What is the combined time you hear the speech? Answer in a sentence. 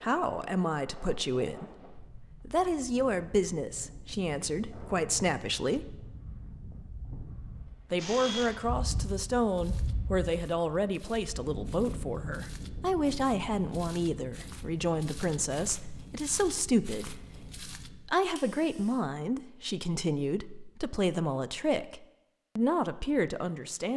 The speech can be heard for 22 seconds in total.